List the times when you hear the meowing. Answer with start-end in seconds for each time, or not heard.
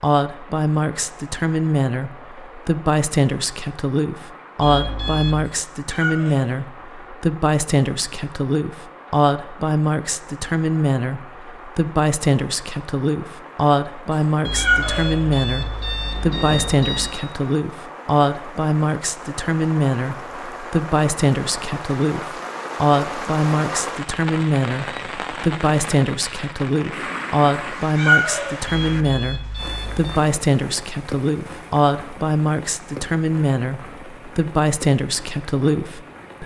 5.5-6.5, 14.1-15.2, 27.9-28.6.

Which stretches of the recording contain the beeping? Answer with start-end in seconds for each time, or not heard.
4.6-5.5, 14.4-17.2, 28.6-30.2.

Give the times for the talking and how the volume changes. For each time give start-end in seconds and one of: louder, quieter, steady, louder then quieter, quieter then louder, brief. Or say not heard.
0.0-36.4 steady.